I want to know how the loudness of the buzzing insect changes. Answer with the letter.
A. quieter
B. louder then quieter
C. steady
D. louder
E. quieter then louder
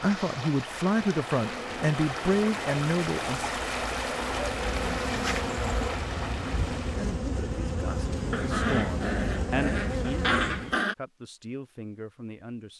D.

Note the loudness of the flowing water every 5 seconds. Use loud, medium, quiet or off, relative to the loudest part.
loud, loud, off.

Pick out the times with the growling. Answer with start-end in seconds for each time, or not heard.
8.3-10.9.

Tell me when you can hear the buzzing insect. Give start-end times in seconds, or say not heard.
0.0-10.8.